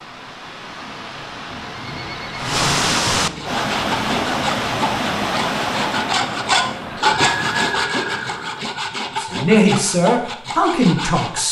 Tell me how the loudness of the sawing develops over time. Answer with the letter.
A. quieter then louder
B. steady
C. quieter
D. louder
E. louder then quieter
E.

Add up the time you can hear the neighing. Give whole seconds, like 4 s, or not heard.
4 s.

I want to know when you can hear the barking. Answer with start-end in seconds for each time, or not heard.
not heard.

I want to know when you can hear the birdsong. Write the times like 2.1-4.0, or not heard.
not heard.